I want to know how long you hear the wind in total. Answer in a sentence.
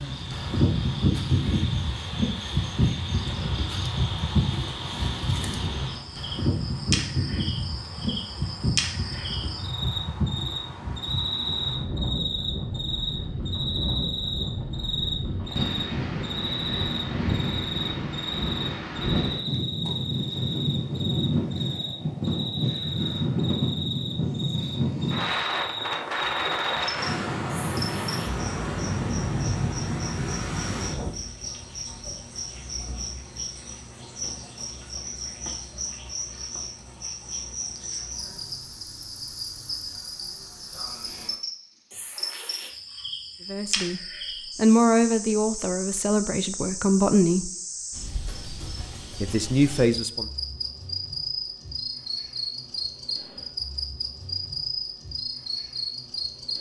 The wind can be heard for 31 seconds in total.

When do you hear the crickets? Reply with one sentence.
The crickets can be heard from 0.0 to 56.5 s.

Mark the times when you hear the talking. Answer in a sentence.
You can hear the talking from 43.5 to 47.5 s and from 49.2 to 50.2 s.